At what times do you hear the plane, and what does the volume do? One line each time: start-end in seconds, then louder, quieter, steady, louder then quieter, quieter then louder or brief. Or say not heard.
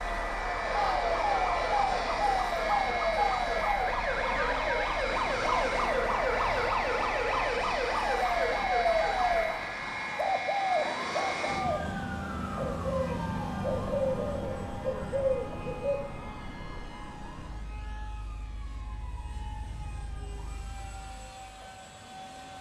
0.0-22.5 quieter.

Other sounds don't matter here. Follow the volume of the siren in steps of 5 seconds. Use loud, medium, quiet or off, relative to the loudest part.
loud, loud, quiet, quiet, quiet.